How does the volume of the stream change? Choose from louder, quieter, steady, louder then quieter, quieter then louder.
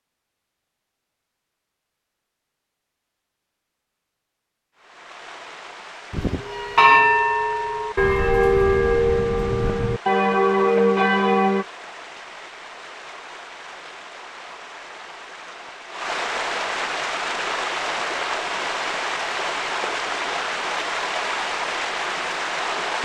louder.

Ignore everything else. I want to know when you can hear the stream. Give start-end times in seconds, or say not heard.
4.8-23.0.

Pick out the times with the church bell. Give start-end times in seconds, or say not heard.
6.1-11.7.